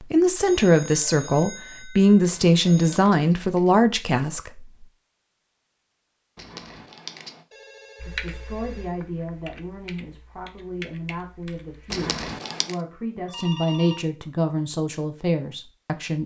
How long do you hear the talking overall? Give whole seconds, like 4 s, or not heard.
13 s.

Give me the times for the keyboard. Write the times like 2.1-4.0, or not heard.
8.0-12.1.